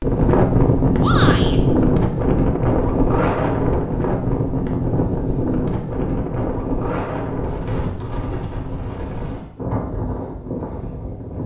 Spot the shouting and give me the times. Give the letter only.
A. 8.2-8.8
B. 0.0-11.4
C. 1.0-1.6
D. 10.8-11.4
C.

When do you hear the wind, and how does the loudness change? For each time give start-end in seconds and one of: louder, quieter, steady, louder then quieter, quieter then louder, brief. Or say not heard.
0.0-11.4 quieter.